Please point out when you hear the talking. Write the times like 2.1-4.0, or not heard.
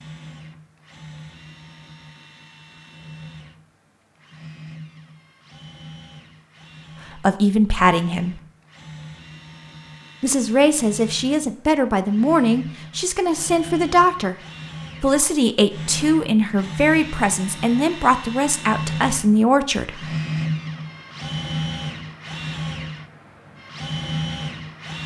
7.2-8.4, 10.2-14.3, 15.0-20.1.